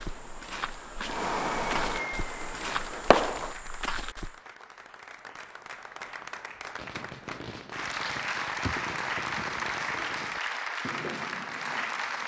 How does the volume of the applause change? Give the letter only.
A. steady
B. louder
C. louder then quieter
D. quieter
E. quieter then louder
B.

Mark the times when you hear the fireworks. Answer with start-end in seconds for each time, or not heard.
0.0-3.5, 6.8-12.2.